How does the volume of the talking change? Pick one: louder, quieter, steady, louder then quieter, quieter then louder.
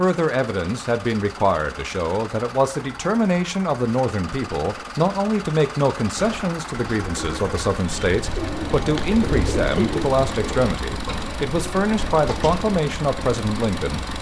steady.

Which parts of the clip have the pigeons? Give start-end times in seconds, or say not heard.
6.2-12.7.